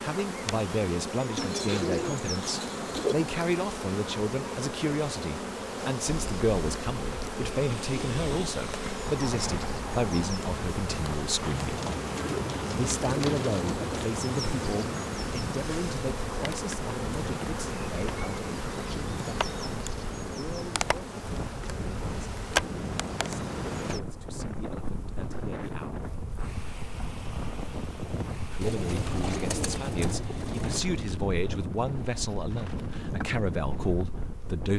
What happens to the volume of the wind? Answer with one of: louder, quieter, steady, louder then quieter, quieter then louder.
steady.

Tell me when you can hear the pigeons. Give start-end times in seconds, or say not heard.
1.4-3.1, 11.8-14.1, 28.6-30.9.